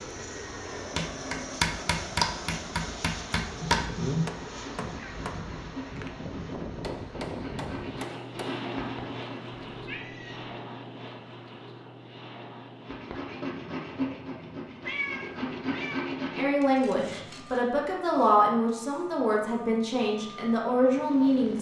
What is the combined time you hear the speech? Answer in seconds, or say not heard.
5 s.